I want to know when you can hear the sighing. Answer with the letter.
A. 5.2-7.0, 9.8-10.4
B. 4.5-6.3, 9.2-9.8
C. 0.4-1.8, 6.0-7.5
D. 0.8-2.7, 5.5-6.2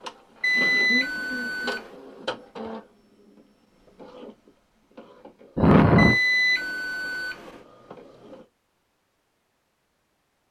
D.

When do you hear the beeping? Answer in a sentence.
You can hear the beeping from 0.4 to 1.8 s and from 6.0 to 7.5 s.